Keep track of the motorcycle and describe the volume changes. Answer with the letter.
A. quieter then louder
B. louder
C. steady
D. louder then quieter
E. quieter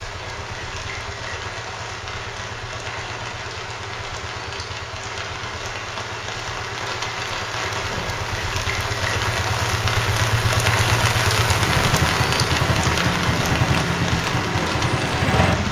B.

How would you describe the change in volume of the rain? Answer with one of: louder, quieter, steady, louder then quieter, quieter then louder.
louder.